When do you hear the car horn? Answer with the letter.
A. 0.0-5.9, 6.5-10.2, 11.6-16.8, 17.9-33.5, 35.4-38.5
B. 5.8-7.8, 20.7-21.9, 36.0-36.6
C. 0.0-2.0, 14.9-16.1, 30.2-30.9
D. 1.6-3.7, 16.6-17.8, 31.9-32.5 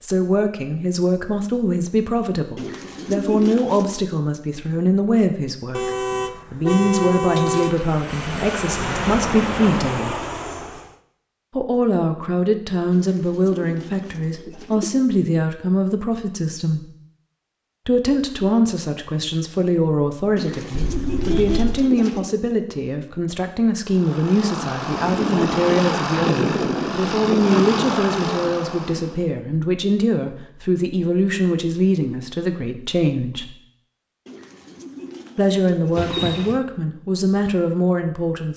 B.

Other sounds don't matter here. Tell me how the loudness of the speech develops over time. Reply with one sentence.
The loudness of the speech stays about the same.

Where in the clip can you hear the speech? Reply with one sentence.
You can hear the speech from 0.0 to 5.9 s, from 6.5 to 10.2 s, from 11.6 to 16.8 s, from 17.9 to 33.5 s and from 35.4 to 38.5 s.